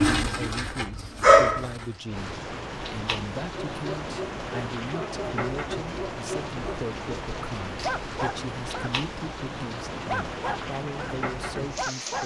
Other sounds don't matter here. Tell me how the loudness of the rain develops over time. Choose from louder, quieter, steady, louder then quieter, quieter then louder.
steady.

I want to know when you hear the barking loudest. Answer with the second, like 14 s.
1 s.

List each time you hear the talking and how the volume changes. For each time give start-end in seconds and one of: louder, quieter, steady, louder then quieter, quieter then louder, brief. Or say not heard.
0.1-12.2 steady.